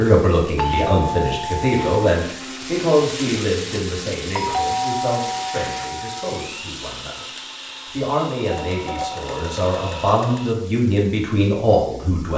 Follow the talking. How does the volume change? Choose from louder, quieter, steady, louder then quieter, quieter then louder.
quieter then louder.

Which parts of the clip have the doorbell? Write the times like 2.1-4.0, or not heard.
0.6-2.0, 4.3-6.4, 8.3-10.4.